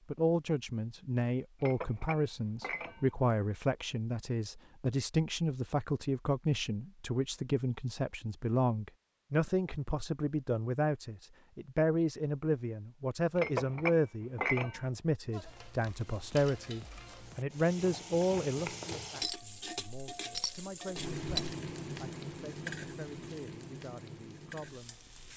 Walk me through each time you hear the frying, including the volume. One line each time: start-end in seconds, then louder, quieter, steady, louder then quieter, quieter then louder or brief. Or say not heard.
15.3-25.3 louder then quieter.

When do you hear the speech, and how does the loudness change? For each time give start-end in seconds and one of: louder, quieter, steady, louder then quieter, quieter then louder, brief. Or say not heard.
0.1-25.1 quieter.